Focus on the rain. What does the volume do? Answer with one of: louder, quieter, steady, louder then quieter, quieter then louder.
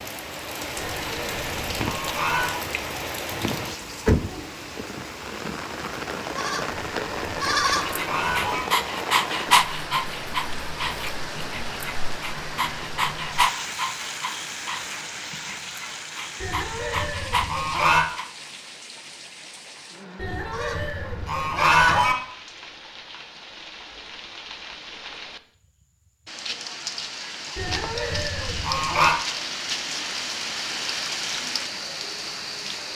quieter then louder.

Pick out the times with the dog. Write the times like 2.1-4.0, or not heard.
7.7-18.3.